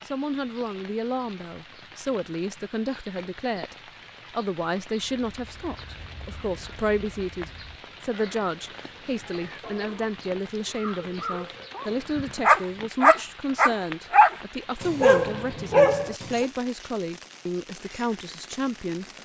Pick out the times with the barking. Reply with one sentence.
You can hear the barking from 11.1 to 16.5 s.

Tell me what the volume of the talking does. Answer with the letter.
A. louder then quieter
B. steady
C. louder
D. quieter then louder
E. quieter
B.